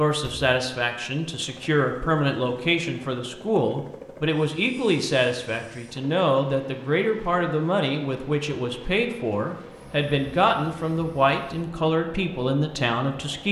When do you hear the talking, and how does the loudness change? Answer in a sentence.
The talking can be heard from 0.0 to 13.4 s, at a steady volume.